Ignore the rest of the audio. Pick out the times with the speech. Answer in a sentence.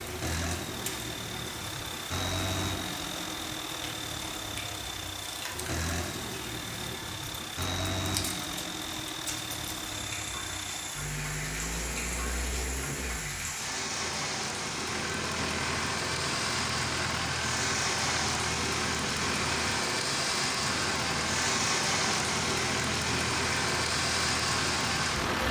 The speech can't be heard in this clip.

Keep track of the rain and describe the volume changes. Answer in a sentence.
The volume of the rain goes up.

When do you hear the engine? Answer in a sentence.
You can hear the engine from 0.0 to 25.4 s.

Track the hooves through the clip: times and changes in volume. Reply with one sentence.
You can't hear the hooves here.